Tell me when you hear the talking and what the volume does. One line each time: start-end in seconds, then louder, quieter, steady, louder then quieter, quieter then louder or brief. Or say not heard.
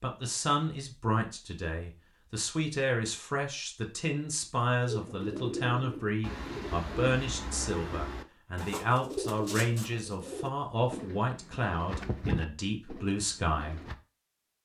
0.0-13.9 steady.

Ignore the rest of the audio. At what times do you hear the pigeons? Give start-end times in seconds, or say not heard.
4.8-13.9.